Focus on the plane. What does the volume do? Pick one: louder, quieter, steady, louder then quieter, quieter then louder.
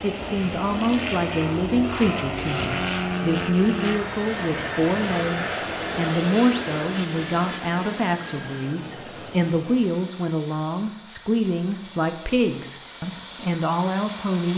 quieter.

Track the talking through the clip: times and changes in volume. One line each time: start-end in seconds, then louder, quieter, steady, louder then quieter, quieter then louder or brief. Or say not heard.
0.0-14.5 steady.